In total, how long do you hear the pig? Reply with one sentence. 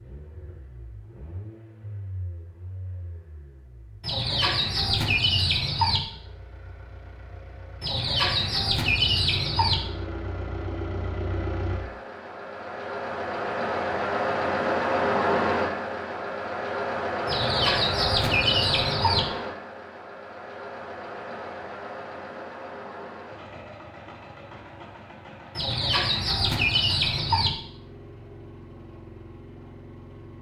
The pig can't be heard in this clip.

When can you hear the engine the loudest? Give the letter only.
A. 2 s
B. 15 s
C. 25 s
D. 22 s
B.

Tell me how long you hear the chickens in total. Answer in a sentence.
You can hear the chickens for 8 seconds altogether.